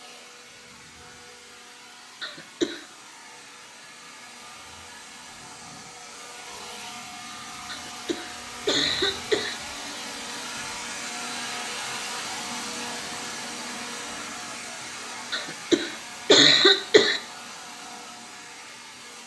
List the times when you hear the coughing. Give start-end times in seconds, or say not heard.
2.2-2.9, 7.7-9.6, 15.3-17.2.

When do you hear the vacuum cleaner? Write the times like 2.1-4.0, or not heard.
0.0-19.2.